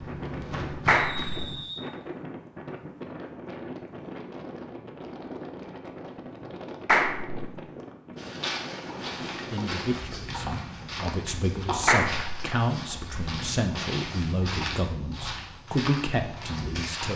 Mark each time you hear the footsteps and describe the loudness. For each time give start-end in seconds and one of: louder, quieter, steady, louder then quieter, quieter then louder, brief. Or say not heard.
0.0-1.6 brief
8.2-17.1 steady.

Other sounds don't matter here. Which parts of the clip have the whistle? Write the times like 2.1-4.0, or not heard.
0.9-1.9.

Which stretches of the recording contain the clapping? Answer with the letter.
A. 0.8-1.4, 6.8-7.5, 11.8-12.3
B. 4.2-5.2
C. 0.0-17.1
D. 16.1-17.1
A.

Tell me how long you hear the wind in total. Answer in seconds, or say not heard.
17 s.